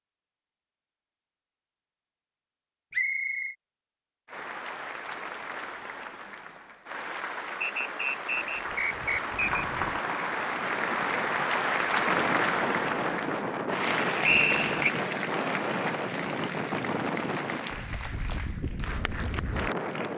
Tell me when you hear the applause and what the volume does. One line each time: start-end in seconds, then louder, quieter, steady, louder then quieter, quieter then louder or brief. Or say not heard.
4.2-20.1 louder then quieter.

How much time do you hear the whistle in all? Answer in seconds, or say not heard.
3 s.